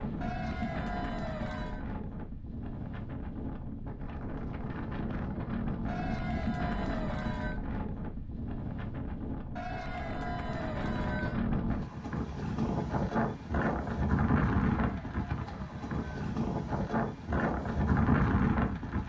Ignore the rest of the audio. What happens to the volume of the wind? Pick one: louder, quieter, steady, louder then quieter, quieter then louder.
louder.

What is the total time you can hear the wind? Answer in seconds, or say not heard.
19 s.